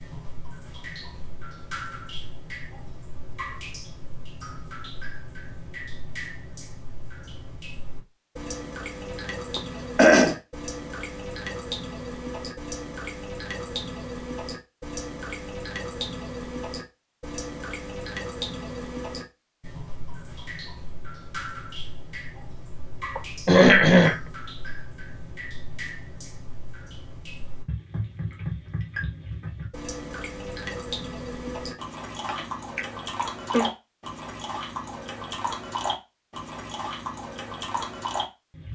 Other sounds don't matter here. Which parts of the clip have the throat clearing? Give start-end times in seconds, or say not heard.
9.6-10.3, 23.1-24.1, 32.2-33.7.